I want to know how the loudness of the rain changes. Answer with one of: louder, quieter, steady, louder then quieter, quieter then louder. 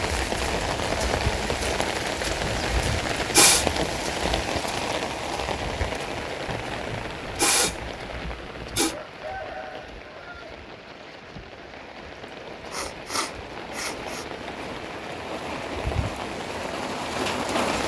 quieter then louder.